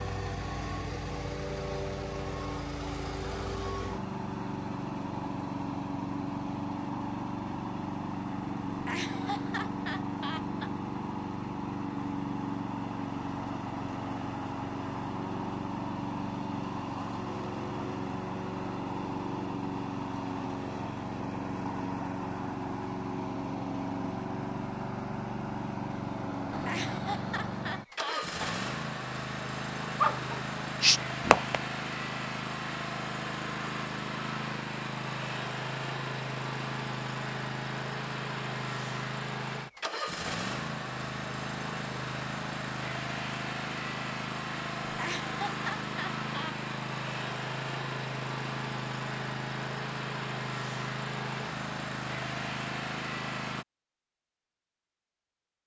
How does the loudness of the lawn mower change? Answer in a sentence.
The volume of the lawn mower stays about the same.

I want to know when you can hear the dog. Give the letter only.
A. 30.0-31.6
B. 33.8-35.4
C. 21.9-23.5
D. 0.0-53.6
A.